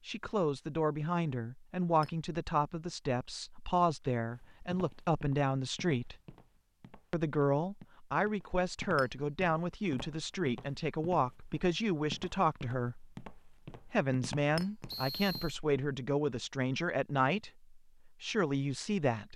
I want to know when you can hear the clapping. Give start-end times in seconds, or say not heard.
not heard.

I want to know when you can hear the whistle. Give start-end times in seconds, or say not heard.
14.8-15.6.